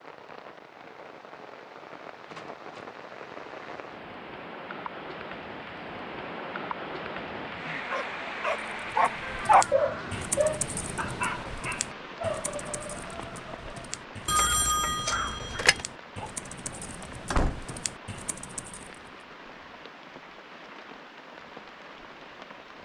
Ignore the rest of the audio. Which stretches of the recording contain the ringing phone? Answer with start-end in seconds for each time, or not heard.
14.2-15.8.